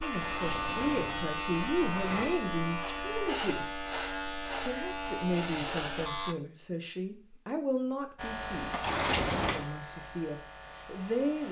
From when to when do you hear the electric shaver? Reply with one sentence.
You can hear the electric shaver from 0.0 to 6.3 s and from 8.2 to 11.4 s.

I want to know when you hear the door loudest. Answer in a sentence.
The volume of the door peaks at 9 seconds.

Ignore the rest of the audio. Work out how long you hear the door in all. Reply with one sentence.
You can hear the door for 3 seconds altogether.